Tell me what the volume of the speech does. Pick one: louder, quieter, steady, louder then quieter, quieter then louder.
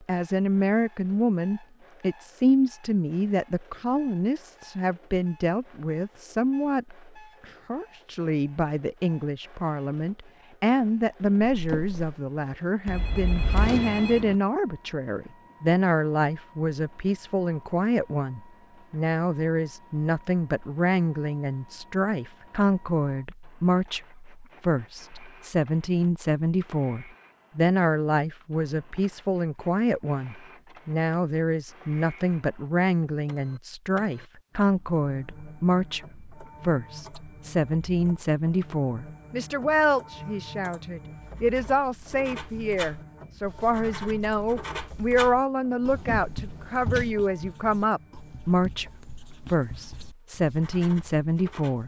steady.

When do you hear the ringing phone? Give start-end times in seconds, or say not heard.
12.8-14.3.